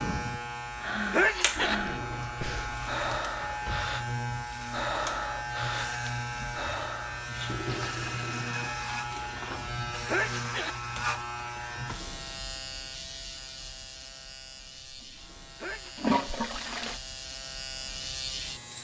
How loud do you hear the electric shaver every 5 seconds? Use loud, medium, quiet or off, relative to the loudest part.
loud, loud, loud, medium.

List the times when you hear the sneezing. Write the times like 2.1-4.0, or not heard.
1.1-2.2, 10.1-10.8, 15.6-16.1.